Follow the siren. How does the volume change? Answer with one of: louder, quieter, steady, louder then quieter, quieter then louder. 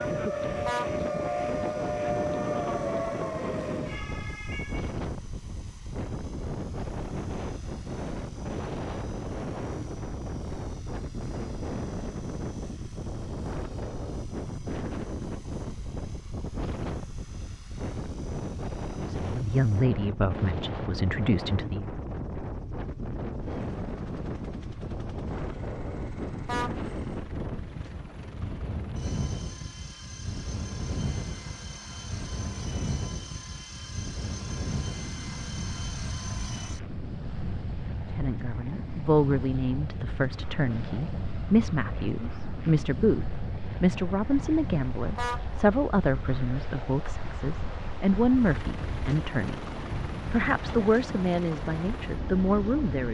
quieter.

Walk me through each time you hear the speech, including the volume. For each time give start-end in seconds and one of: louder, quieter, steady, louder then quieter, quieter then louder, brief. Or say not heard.
19.1-21.9 brief
38.1-49.6 steady
50.3-53.0 brief.